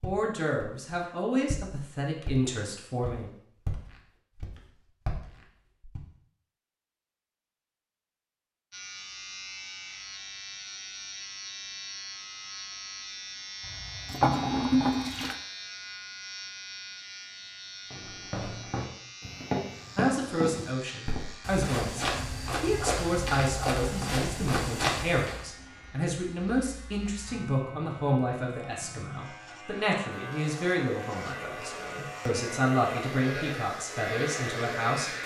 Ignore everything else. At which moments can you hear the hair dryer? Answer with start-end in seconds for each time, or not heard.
30.1-35.2.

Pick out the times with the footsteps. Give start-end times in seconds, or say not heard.
0.0-6.0, 17.9-25.4.